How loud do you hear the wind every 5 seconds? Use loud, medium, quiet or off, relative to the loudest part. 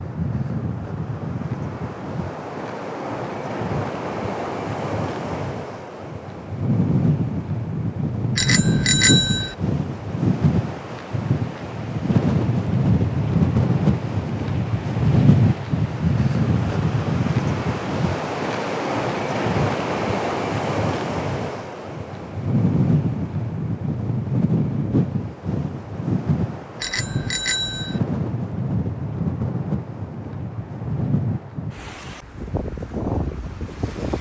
medium, loud, loud, loud, loud, medium, medium.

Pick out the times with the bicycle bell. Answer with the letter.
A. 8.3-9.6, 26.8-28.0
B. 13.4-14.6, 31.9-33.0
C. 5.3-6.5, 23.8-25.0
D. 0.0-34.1
A.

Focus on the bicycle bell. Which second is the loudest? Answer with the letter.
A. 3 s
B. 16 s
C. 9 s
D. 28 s
C.